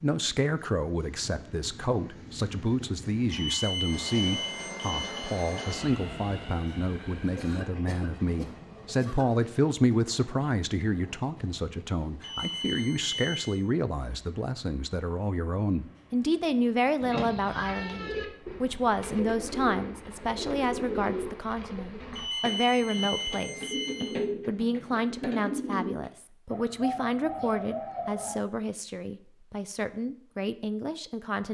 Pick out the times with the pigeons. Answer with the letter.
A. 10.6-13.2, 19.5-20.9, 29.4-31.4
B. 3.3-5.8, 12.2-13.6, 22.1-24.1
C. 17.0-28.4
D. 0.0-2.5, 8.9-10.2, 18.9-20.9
C.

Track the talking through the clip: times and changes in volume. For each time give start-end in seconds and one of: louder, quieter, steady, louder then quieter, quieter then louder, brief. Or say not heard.
0.0-31.4 steady.